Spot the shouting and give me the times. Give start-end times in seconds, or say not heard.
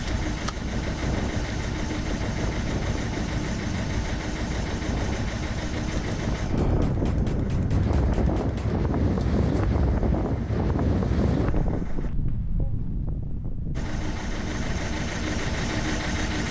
not heard.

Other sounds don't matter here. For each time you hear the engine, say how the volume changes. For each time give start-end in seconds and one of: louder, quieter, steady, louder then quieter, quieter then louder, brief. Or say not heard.
0.0-12.1 quieter
13.8-16.4 brief.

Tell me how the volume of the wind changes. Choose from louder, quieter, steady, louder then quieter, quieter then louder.
louder then quieter.